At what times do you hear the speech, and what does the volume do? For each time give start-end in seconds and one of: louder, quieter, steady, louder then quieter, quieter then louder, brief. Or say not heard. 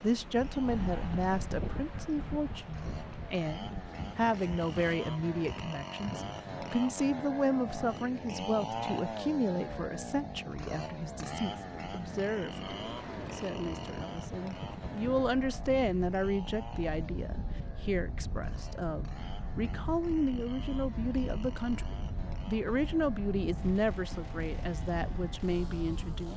0.0-26.3 steady.